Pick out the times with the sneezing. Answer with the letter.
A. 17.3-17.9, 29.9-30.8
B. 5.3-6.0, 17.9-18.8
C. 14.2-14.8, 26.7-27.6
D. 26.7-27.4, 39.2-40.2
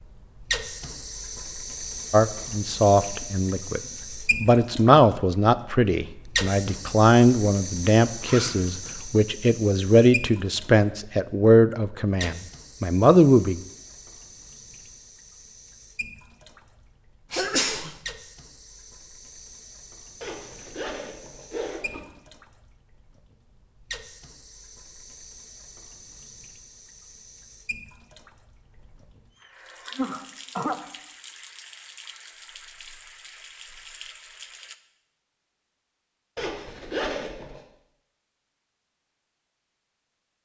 A.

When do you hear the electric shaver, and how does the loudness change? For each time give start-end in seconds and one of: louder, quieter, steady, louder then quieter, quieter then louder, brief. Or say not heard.
not heard.